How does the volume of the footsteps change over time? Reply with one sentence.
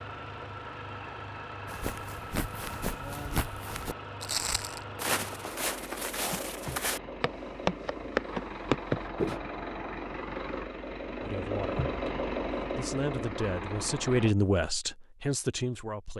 The loudness of the footsteps goes up.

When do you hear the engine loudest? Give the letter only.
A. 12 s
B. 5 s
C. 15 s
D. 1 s
A.